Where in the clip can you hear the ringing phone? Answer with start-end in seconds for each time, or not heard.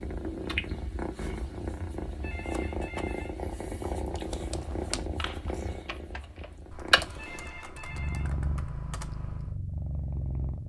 2.2-3.4, 7.2-8.3.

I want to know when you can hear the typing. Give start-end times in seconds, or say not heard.
4.1-9.6.